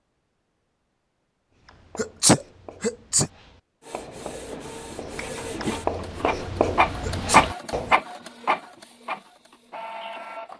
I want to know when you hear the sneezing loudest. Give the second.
2 s.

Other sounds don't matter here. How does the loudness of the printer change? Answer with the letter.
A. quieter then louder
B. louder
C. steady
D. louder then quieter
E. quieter
D.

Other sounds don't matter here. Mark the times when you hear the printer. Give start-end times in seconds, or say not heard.
3.8-10.5.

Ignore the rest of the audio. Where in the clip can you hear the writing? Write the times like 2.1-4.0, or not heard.
1.5-8.0.